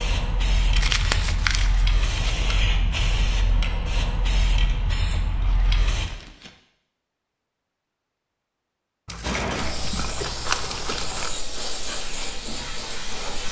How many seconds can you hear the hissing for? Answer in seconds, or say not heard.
10 s.